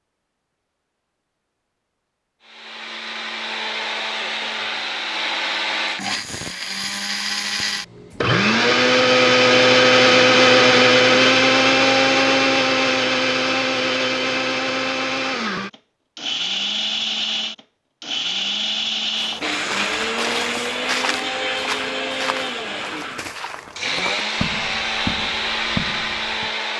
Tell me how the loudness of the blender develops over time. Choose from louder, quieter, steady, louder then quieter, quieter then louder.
louder then quieter.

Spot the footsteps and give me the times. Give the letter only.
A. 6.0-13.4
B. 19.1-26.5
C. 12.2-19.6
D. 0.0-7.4
B.